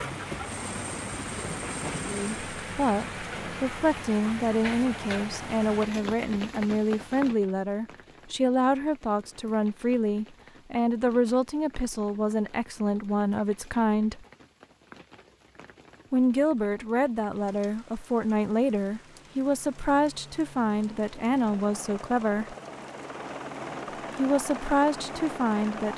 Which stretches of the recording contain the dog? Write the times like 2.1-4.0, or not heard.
not heard.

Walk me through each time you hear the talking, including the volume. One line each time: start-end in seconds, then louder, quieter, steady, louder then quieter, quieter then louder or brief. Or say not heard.
1.9-14.2 steady
16.1-22.6 steady
24.1-25.9 brief.